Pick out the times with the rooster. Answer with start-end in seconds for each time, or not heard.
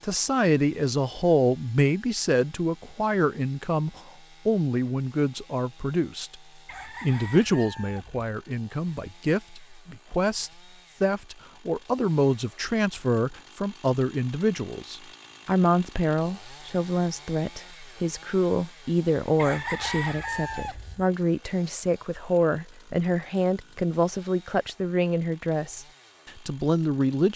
6.7-8.2, 19.4-21.1.